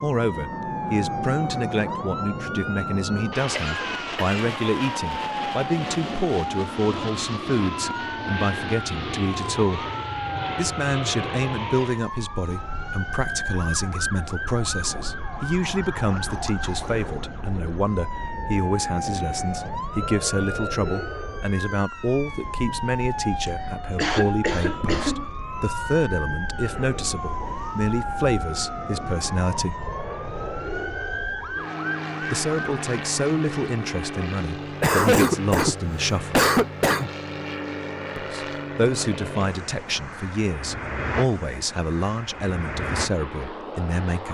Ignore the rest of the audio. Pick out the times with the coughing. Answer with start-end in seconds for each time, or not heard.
3.5-4.4, 23.4-25.2, 34.8-37.1.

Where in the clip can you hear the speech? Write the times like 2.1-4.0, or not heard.
0.0-9.8, 10.6-29.8, 32.2-36.5, 38.1-44.2.